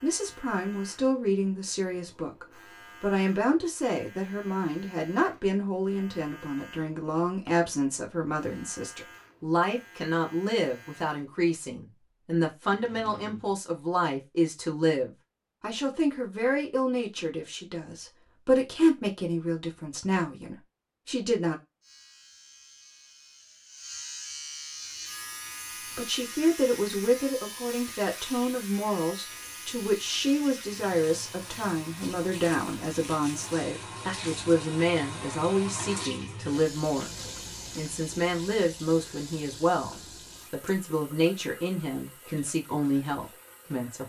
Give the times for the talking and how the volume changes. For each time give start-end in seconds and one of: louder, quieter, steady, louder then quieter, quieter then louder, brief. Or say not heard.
0.0-21.6 steady
25.8-44.0 steady.